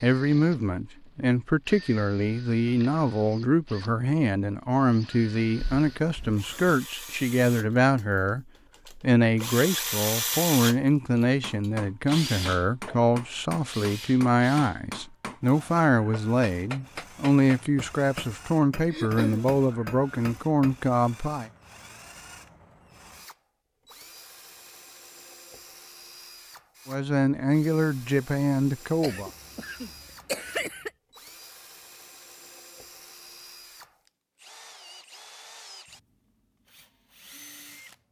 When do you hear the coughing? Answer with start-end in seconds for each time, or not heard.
5.5-6.8, 18.9-19.4, 29.0-30.9.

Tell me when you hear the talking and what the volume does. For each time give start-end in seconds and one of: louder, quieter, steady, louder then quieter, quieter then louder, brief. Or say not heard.
0.0-21.5 steady
26.9-29.3 brief.